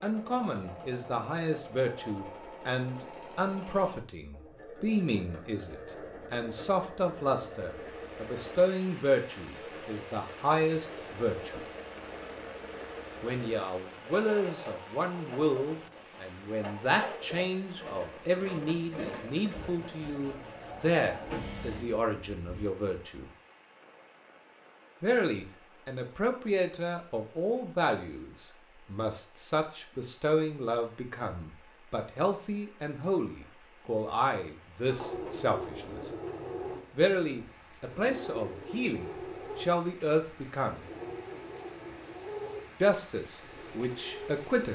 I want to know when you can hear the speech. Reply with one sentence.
The speech can be heard from 0.0 to 11.7 s, from 13.2 to 23.3 s, from 25.0 to 36.1 s, from 36.9 to 40.9 s and from 42.8 to 44.7 s.